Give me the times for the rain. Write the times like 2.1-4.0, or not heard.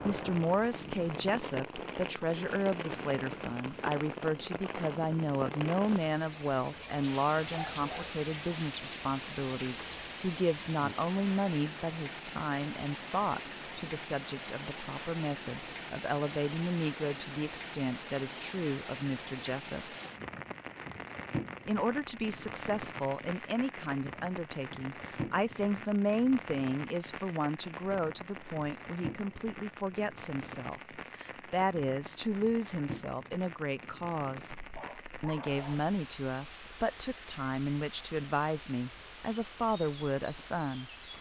0.0-41.1.